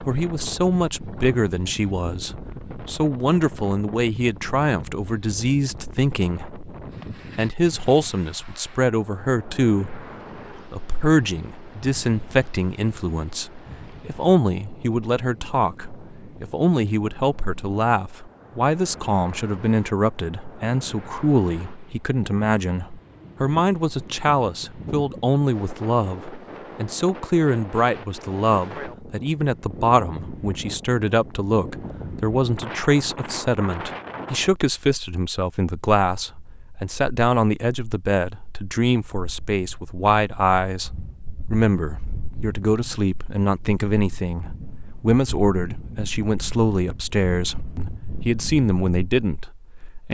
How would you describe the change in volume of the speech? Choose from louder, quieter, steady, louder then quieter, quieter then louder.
steady.